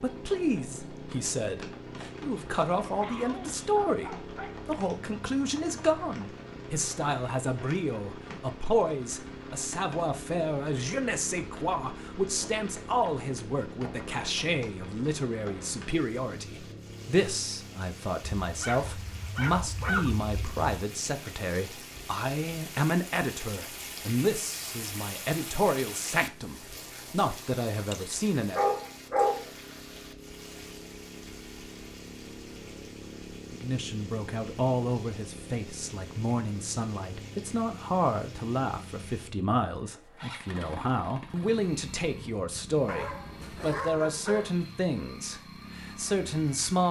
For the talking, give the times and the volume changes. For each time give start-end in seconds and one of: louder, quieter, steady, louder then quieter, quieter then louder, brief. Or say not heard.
0.0-28.6 steady
33.5-46.8 steady.